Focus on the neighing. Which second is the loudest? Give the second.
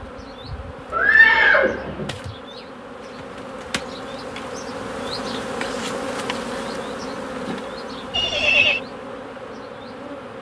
1 s.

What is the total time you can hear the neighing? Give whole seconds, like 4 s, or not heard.
2 s.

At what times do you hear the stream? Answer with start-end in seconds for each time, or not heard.
not heard.